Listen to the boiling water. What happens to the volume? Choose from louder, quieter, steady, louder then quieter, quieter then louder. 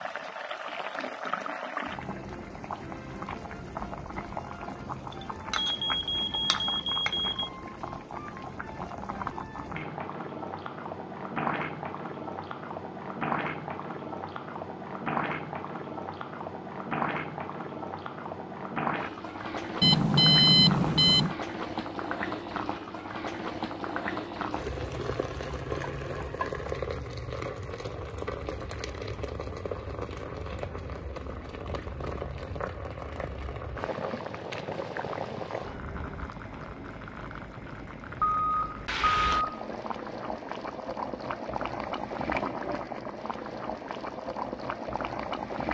steady.